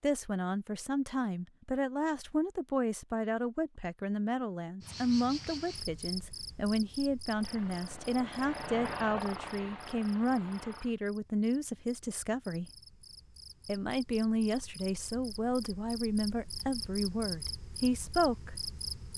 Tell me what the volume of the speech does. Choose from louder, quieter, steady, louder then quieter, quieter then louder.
steady.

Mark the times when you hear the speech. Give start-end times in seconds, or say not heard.
0.0-12.7, 13.7-18.6.